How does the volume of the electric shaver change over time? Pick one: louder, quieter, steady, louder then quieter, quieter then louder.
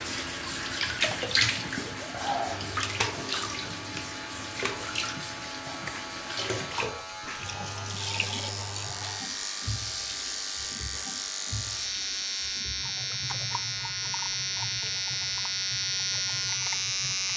louder.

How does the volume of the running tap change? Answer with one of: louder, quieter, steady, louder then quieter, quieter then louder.
quieter.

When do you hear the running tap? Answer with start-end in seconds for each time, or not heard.
0.0-17.3.